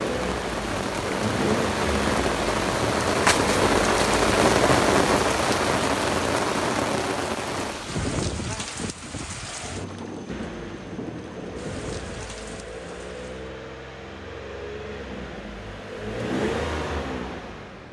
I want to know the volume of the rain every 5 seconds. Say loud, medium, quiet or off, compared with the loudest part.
loud, loud, quiet, off.